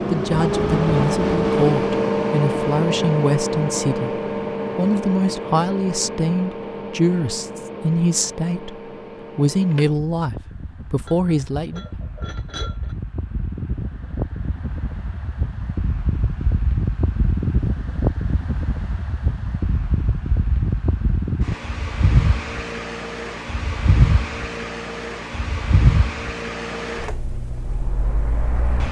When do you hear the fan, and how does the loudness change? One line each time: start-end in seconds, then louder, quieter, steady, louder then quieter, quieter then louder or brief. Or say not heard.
0.0-28.8 quieter then louder.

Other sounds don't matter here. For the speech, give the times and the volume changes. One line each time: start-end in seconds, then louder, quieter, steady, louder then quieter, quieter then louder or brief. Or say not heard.
0.1-11.9 steady.